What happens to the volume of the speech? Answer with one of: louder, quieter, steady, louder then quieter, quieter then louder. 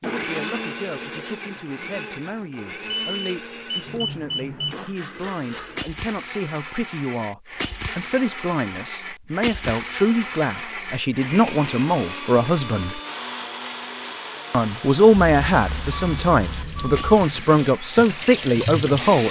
louder.